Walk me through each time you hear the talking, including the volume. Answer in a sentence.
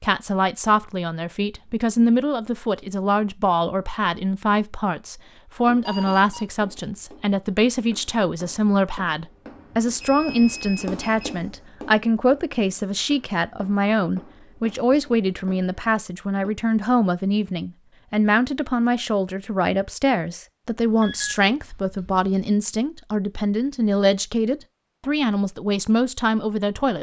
The talking can be heard from 0.0 to 26.9 s, at a steady volume.